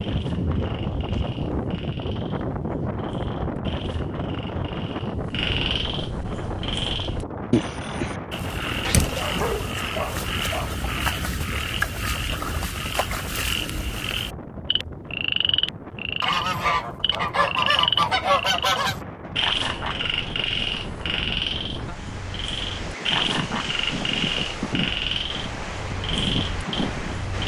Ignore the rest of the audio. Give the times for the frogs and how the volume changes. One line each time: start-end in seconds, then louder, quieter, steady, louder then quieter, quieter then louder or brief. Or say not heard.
0.0-27.4 louder.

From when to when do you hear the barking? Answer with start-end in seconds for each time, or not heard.
8.8-10.7.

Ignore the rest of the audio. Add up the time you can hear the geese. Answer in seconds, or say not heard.
3 s.